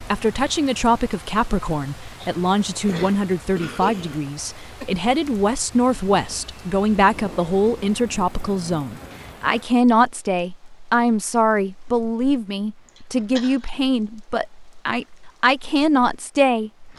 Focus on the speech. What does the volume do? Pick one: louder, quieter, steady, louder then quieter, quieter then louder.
steady.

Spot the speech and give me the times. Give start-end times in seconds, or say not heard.
0.1-16.7.